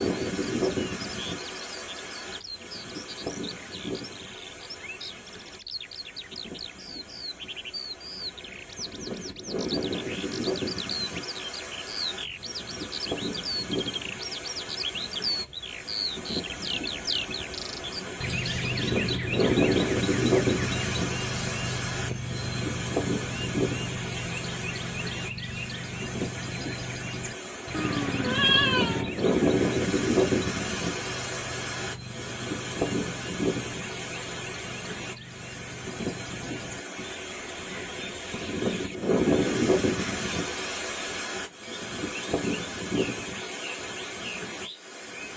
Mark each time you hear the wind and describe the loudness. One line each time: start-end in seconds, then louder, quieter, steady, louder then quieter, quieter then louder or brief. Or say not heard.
0.0-45.3 louder.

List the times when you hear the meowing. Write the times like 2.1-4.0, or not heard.
27.7-29.1.